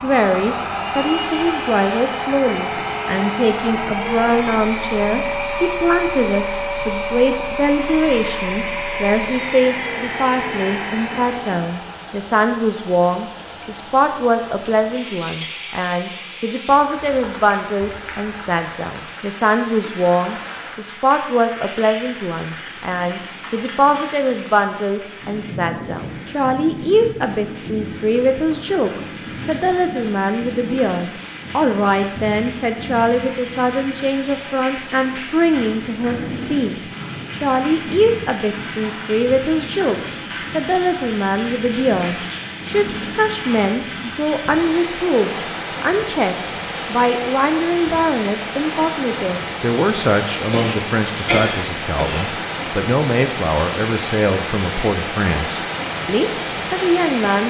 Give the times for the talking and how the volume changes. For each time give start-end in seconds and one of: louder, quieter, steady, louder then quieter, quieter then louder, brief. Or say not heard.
0.0-57.4 steady.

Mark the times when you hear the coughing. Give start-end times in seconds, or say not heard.
50.5-52.3.